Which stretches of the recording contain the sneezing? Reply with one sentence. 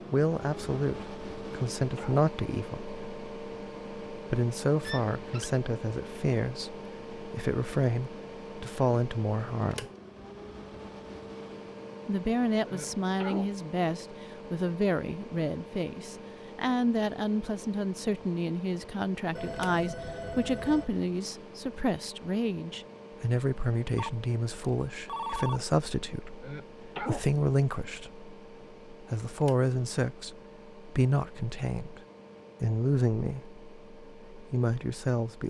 The sneezing can be heard from 1.4 to 2.2 s, from 12.7 to 13.5 s and from 26.4 to 27.2 s.